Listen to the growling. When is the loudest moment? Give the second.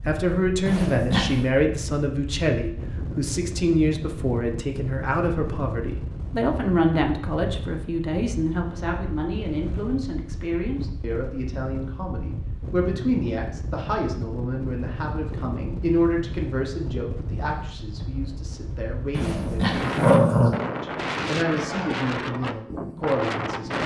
20 s.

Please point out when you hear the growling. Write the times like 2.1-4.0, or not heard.
0.7-1.6, 19.1-20.6.